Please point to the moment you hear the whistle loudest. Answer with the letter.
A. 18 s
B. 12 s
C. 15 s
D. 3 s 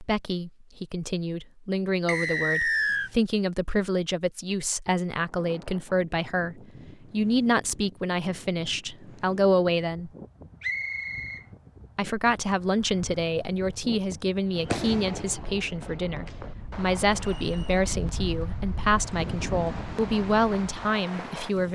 D.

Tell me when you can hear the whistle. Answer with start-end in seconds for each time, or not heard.
2.0-3.1, 10.6-11.4, 17.3-17.8.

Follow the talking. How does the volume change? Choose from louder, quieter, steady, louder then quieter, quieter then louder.
steady.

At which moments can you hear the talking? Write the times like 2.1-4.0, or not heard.
0.0-10.1, 11.9-21.7.